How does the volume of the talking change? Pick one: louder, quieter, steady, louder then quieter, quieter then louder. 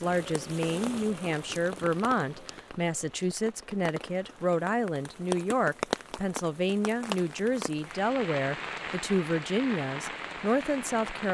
steady.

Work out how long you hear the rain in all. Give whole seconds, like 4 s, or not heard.
11 s.